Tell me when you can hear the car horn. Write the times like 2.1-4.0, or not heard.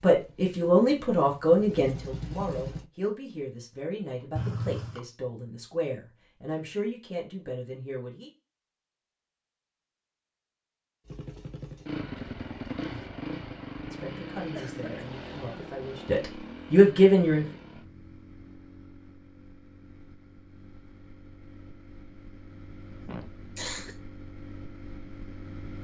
not heard.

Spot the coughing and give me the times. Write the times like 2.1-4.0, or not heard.
4.3-5.0, 14.6-15.1, 23.0-23.9.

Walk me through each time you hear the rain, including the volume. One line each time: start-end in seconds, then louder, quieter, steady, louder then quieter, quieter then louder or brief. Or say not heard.
not heard.